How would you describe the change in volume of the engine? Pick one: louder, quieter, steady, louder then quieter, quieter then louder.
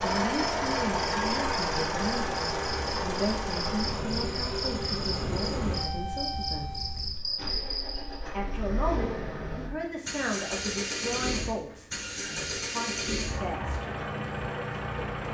quieter then louder.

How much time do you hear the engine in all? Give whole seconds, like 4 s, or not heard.
15 s.